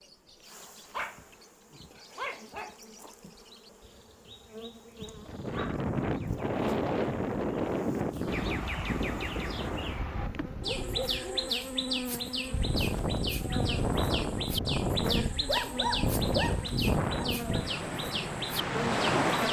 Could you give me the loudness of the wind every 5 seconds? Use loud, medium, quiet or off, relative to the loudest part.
off, loud, loud, loud.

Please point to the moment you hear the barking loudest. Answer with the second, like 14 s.
16 s.